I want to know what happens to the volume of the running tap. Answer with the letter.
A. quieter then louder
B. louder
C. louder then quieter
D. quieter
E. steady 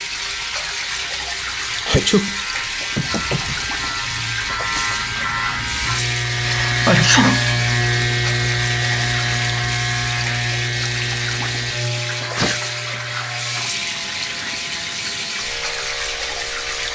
E.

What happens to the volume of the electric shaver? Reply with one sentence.
The volume of the electric shaver goes up, then down.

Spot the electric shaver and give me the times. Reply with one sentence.
You can hear the electric shaver from 0.0 to 16.8 s.